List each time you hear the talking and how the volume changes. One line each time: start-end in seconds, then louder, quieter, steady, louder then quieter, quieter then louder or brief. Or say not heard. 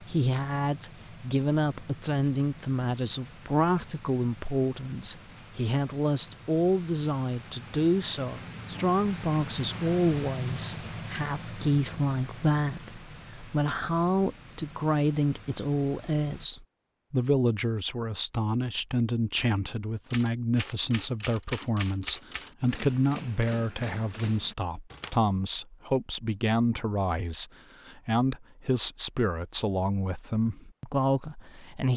0.0-31.9 steady.